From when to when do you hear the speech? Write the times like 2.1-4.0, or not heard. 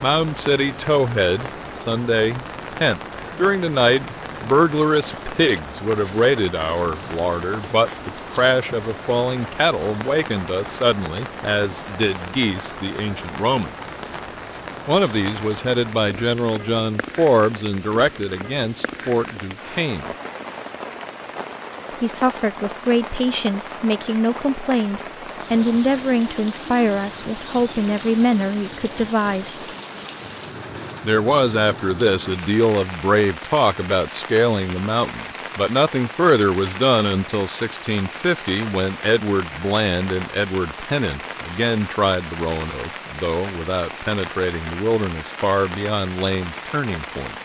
0.0-13.7, 14.8-20.1, 22.0-29.6, 31.0-47.4.